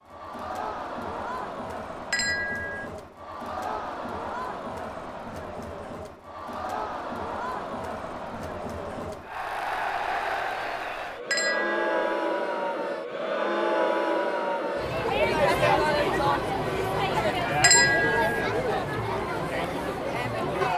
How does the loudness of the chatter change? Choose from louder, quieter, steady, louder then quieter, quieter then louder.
louder.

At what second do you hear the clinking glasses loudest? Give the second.
18 s.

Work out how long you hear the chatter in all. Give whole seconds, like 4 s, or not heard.
21 s.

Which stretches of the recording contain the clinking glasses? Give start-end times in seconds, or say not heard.
2.1-2.9, 11.3-12.0, 17.6-18.5.